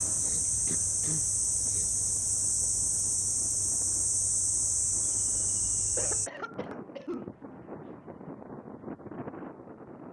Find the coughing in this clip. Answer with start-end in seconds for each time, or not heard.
0.2-1.9, 6.0-7.3.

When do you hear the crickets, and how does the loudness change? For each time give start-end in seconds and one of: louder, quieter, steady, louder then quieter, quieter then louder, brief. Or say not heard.
0.0-6.3 steady.